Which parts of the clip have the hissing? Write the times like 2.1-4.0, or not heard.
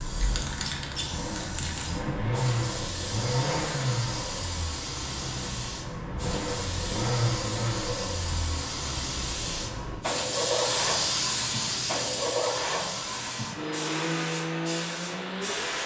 0.0-15.8.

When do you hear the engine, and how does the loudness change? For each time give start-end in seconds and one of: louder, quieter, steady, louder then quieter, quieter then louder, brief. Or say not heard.
0.0-15.8 steady.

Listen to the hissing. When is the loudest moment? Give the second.
11 s.